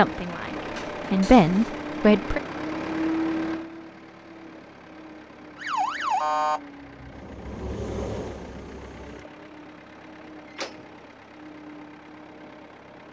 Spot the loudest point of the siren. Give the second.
6 s.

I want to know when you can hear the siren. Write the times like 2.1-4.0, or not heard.
5.5-9.3.